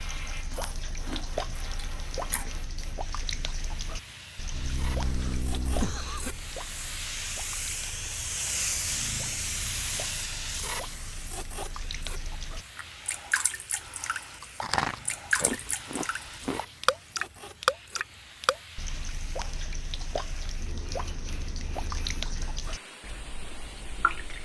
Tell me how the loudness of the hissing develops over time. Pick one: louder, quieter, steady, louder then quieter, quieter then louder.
louder then quieter.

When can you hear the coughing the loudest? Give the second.
6 s.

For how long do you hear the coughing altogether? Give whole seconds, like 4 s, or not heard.
2 s.